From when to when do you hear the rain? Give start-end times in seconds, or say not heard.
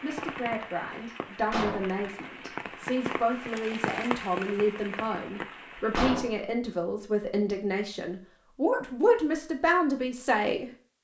0.0-6.0.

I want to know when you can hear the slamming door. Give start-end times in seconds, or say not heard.
1.5-2.0, 5.9-6.3.